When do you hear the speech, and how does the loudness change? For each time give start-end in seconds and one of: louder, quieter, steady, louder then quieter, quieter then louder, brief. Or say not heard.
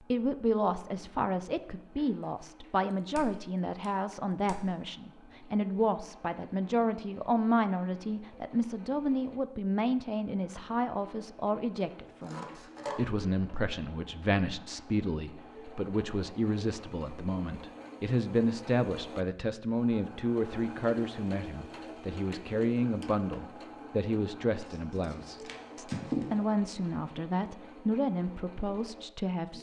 0.1-29.5 steady.